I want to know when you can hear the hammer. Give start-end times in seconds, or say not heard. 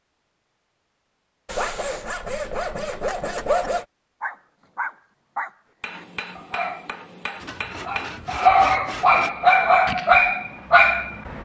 5.8-8.3.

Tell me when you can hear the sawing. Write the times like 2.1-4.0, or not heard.
1.4-3.9, 7.4-9.3.